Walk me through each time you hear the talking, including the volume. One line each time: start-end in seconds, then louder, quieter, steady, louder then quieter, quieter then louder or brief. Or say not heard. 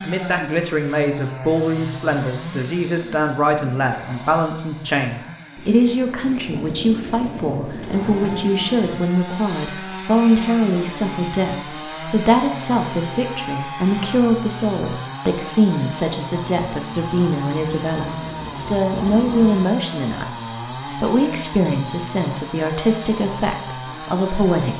0.0-24.7 steady.